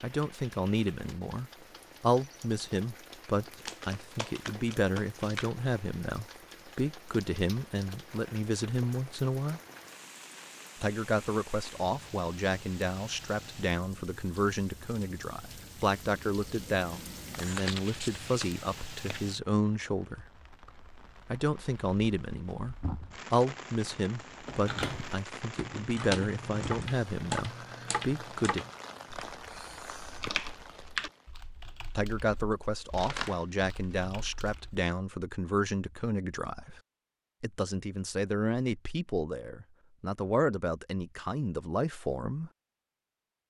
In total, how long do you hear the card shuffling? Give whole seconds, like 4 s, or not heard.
6 s.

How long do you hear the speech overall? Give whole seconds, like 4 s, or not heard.
36 s.